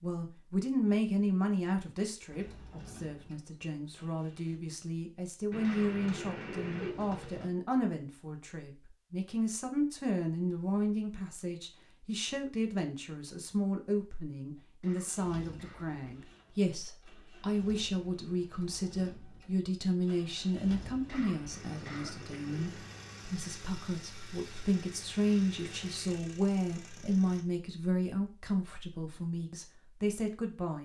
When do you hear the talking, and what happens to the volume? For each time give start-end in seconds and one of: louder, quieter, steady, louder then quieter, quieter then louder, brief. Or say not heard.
0.0-30.7 steady.